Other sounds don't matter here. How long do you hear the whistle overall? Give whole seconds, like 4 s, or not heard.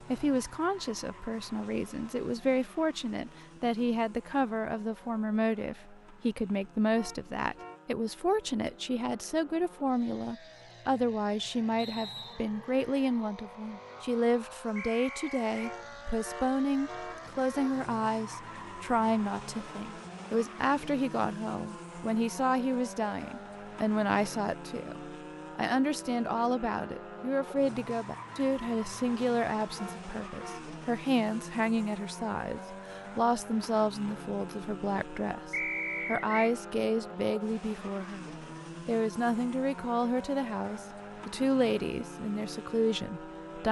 3 s.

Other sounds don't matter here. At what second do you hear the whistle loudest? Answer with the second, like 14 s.
36 s.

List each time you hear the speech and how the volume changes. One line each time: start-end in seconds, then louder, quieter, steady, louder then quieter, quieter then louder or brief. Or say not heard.
0.1-43.6 steady.